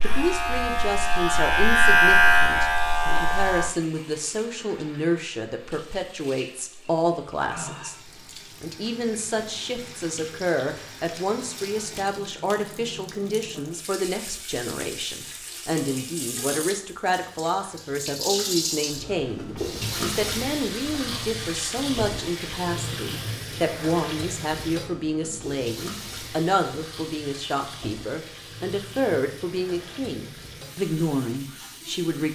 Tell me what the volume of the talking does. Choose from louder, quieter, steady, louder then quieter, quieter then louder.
steady.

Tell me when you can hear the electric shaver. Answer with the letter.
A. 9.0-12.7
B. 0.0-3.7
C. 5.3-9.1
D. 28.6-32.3
B.